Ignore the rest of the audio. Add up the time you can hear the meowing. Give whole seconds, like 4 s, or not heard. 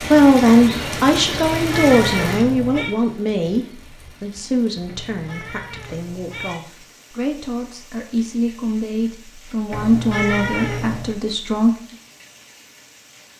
5 s.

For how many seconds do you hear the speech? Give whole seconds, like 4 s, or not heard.
12 s.